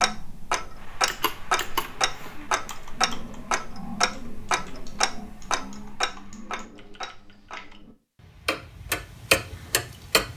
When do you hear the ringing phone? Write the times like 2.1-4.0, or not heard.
not heard.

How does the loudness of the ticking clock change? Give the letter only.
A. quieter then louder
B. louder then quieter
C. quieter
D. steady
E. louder
A.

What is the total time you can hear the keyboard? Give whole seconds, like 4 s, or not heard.
7 s.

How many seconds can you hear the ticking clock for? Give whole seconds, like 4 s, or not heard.
10 s.